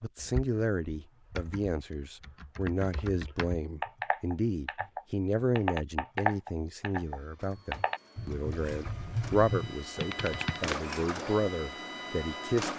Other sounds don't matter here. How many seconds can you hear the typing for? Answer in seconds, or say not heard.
11 s.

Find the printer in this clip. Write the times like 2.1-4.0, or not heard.
6.9-12.7.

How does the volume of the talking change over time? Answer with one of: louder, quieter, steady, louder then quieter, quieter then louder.
steady.